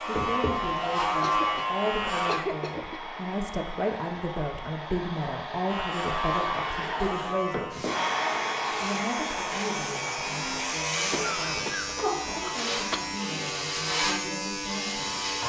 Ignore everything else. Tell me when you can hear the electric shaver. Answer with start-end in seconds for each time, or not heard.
0.0-2.4, 5.7-15.4.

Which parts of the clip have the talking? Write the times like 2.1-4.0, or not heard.
0.0-7.8, 8.7-15.4.